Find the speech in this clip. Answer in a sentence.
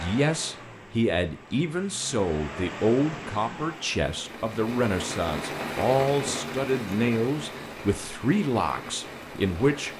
The speech can be heard from 0.0 to 9.9 s.